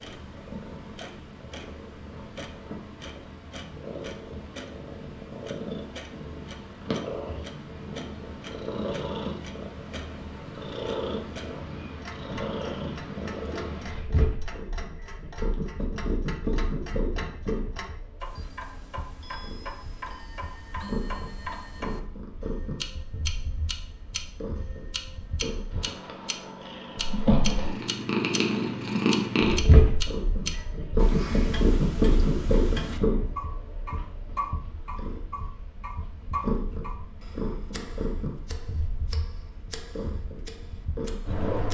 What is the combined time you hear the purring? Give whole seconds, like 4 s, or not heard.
42 s.